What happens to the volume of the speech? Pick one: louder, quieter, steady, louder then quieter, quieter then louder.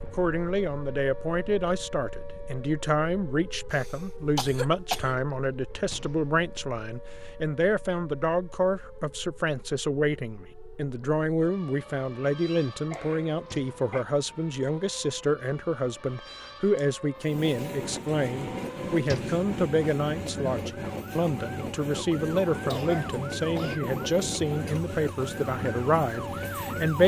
steady.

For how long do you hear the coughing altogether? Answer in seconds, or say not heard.
4 s.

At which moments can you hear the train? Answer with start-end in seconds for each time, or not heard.
17.1-27.0.